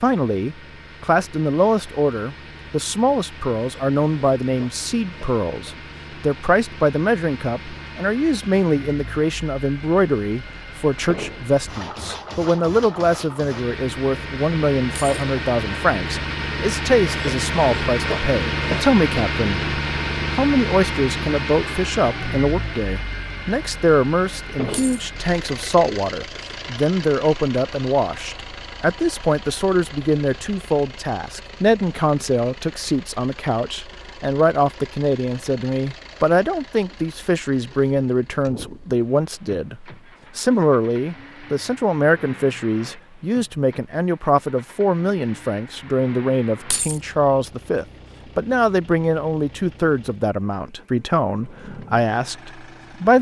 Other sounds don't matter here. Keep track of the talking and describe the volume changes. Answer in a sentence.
The loudness of the talking stays about the same.